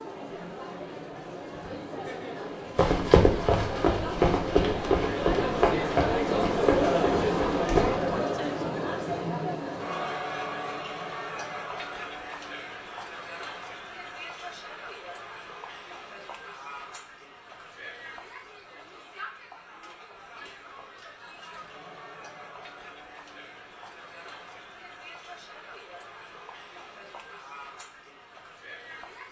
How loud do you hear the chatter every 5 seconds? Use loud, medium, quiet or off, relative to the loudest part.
medium, loud, medium, quiet, quiet, quiet.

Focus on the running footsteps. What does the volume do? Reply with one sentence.
The volume of the running footsteps goes down.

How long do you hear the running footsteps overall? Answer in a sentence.
The running footsteps can be heard for 5 seconds in total.